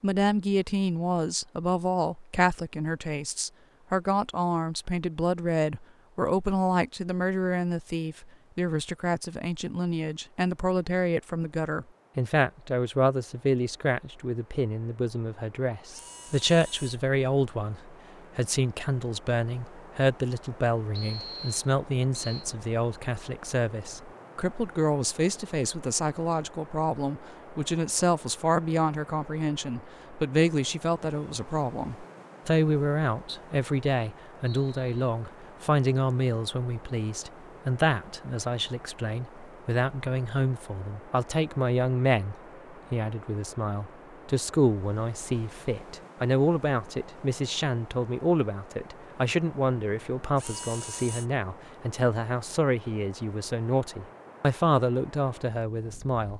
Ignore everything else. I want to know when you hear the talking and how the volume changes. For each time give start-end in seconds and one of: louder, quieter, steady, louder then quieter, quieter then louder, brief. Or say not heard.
0.0-56.3 steady.